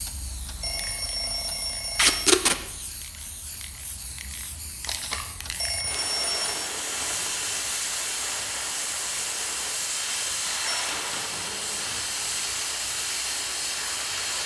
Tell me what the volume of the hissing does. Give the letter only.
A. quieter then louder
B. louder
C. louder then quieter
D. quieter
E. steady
B.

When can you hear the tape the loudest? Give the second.
2 s.